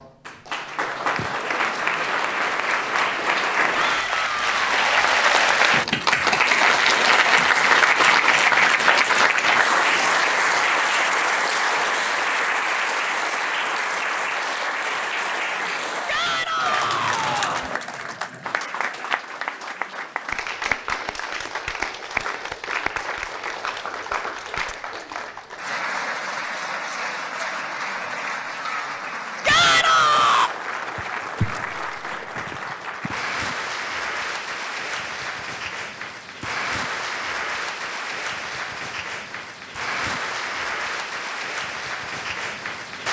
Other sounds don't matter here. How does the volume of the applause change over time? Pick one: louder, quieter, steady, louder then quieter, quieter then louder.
quieter.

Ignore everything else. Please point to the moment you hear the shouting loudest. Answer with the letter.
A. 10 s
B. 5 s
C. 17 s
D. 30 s
D.